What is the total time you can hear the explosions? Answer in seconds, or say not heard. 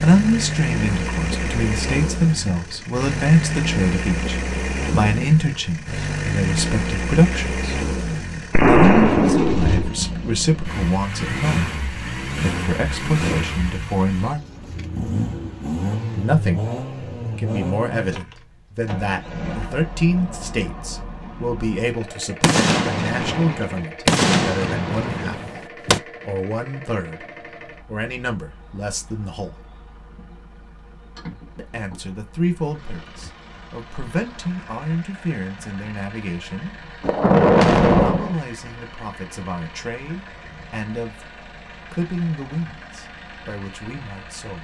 6 s.